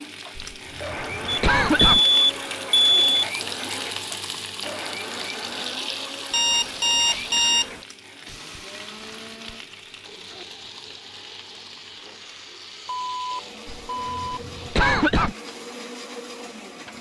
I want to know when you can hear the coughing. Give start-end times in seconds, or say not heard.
0.3-2.0, 13.7-15.3.